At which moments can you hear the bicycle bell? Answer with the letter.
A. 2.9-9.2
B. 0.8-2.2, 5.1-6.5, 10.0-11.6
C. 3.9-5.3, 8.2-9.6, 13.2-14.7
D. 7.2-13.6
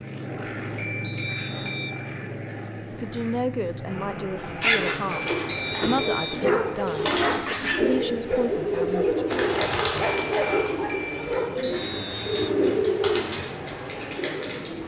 B.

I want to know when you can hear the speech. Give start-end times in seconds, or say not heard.
2.9-9.2.